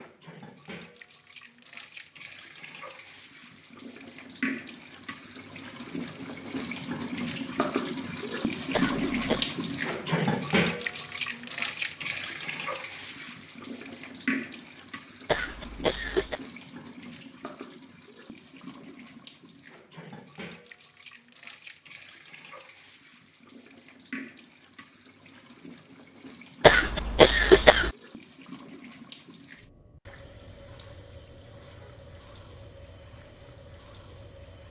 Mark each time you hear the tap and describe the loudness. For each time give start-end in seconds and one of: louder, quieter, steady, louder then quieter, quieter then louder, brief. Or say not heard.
0.0-34.6 louder then quieter.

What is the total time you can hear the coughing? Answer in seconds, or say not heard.
3 s.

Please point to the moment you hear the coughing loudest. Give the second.
27 s.